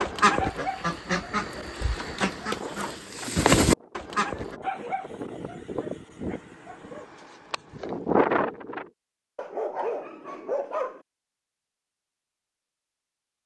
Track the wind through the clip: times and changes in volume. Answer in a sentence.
The wind can be heard from 0.0 to 8.8 s, getting louder.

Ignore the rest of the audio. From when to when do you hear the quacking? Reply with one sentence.
You can hear the quacking from 0.0 to 4.5 s.